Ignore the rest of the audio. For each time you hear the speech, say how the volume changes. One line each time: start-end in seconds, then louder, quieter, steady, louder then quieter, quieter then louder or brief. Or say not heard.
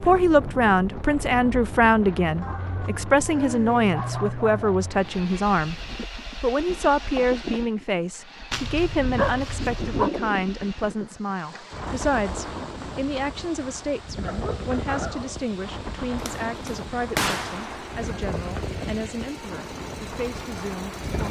0.0-21.2 quieter.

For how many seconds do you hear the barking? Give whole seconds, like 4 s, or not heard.
5 s.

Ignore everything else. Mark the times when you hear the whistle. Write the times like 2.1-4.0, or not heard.
not heard.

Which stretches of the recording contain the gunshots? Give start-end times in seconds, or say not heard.
16.2-18.1.